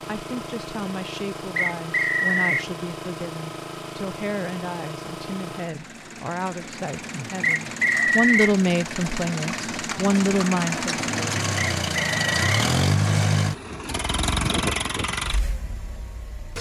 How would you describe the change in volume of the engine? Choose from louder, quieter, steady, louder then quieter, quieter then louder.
louder.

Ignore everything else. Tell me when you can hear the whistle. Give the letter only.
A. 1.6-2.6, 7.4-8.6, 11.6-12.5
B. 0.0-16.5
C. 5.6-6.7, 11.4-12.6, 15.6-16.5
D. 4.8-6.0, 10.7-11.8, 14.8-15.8
A.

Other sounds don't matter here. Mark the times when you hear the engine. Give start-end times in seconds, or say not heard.
0.0-16.5.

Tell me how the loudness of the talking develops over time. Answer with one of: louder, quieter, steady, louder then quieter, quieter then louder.
louder.